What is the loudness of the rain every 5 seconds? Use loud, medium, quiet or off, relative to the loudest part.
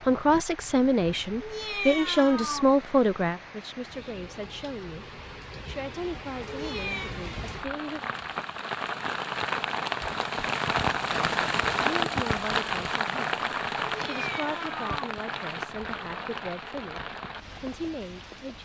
quiet, medium, loud, medium.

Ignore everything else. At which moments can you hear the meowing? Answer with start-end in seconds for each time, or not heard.
1.4-2.6, 6.5-7.2, 13.8-15.1.